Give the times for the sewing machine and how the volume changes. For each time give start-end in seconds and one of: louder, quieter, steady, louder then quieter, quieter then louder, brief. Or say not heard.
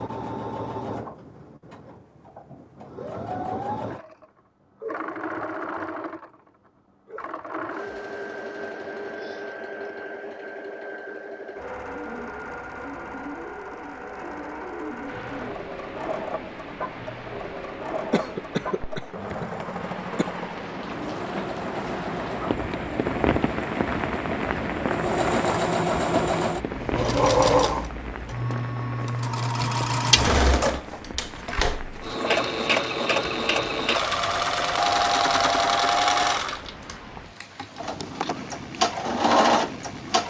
0.0-40.2 louder.